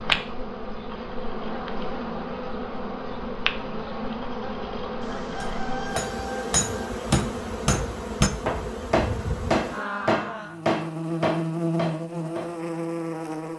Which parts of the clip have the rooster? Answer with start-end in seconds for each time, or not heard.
5.0-6.7.